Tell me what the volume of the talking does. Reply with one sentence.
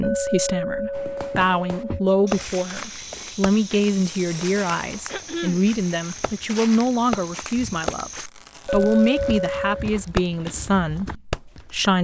The loudness of the talking stays about the same.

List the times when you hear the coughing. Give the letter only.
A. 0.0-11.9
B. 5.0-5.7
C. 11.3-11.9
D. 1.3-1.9
B.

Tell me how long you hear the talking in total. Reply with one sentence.
You can hear the talking for 12 seconds altogether.